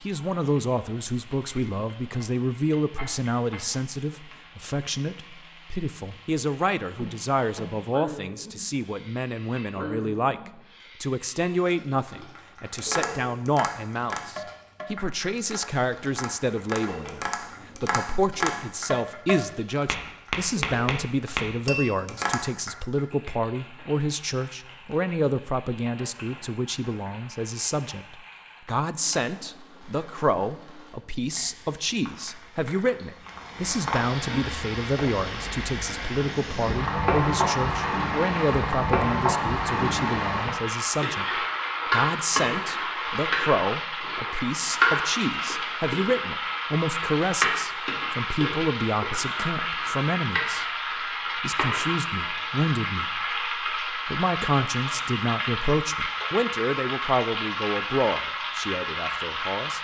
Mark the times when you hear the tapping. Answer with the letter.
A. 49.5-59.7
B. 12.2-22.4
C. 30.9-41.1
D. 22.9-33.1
B.